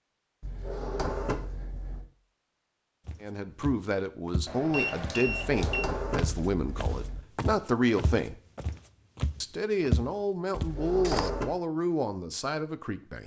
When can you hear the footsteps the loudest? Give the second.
10 s.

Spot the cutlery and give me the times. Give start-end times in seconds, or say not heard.
not heard.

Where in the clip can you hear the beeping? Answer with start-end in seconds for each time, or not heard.
4.5-5.8.